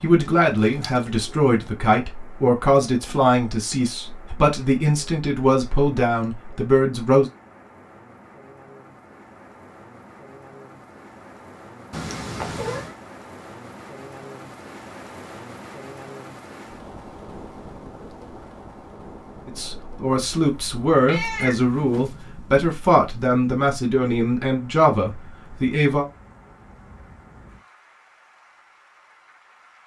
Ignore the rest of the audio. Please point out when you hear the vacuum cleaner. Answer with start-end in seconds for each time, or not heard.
not heard.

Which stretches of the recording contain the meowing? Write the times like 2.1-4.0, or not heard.
0.6-1.5, 11.9-12.9, 21.1-22.2.